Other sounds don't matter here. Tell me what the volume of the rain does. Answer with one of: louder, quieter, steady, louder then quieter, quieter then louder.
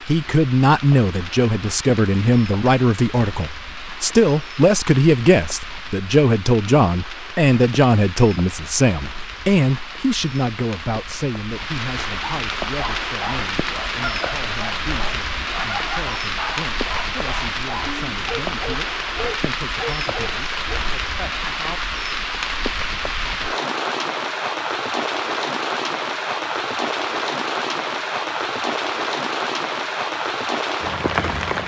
louder.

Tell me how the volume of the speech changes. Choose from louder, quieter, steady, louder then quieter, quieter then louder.
quieter.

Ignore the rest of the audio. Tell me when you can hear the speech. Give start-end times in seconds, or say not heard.
0.1-21.8.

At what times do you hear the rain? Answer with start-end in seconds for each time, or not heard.
0.0-31.6.